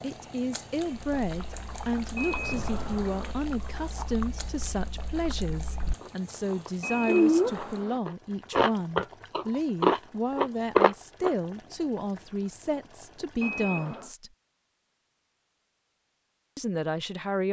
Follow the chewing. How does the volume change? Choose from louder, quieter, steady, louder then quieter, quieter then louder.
louder.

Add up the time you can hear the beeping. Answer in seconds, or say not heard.
3 s.